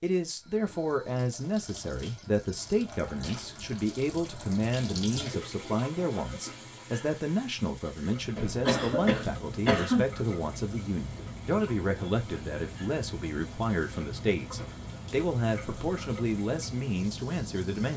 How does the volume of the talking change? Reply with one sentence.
The loudness of the talking stays about the same.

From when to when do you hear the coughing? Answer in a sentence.
You can hear the coughing from 8.3 to 10.1 s.